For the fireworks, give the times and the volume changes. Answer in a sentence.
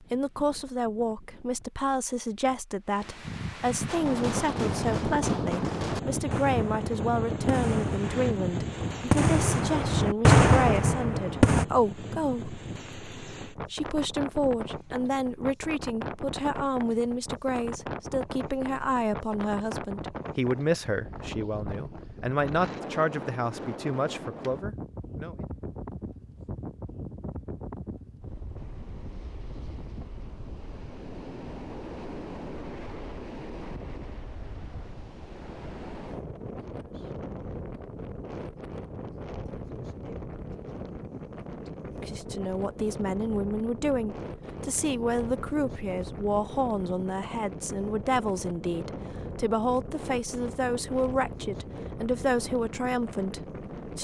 You can hear the fireworks from 3.9 to 11.7 s, getting louder.